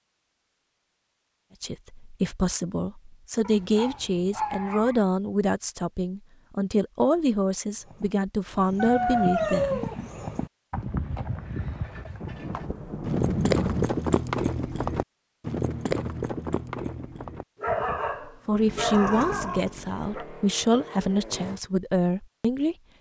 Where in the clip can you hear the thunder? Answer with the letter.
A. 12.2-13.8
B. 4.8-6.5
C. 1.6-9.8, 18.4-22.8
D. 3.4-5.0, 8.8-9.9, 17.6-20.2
A.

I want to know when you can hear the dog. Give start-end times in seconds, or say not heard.
3.4-5.0, 8.8-9.9, 17.6-20.2.